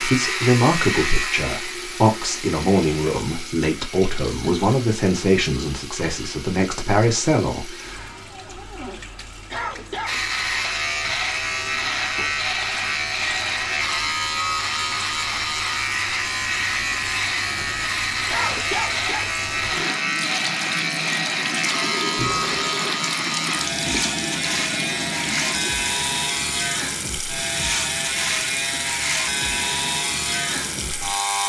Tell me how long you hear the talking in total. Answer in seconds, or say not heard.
8 s.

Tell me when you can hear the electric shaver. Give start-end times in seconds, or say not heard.
0.0-3.2, 10.1-31.4.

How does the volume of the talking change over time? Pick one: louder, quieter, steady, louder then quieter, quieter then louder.
steady.